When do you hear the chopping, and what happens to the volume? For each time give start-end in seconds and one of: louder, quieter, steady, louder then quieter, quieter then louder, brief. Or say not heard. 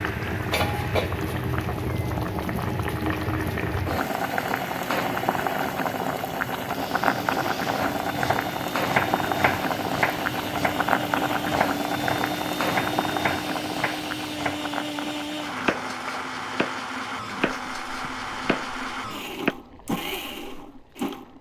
7.8-19.6 quieter.